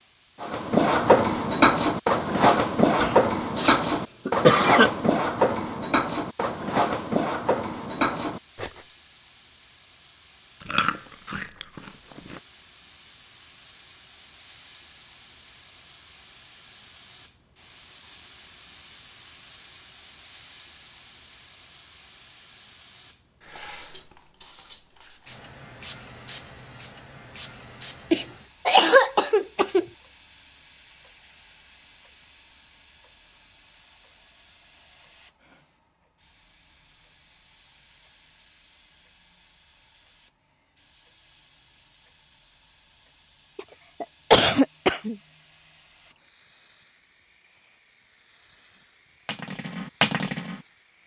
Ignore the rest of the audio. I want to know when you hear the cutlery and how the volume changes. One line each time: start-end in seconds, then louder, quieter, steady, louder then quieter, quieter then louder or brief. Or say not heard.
0.4-8.8 quieter
49.2-51.0 brief.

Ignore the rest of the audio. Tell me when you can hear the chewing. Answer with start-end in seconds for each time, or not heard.
10.6-12.4.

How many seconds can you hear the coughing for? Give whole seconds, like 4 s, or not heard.
5 s.